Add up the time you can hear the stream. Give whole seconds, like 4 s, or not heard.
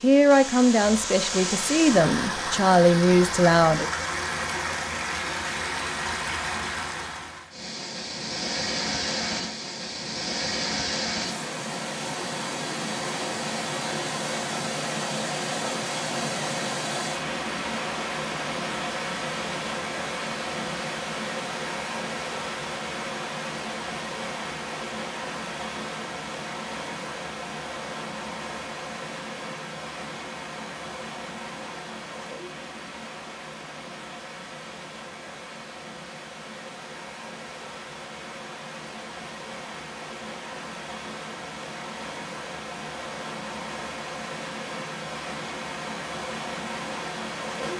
48 s.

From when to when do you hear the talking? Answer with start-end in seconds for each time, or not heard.
0.0-3.9.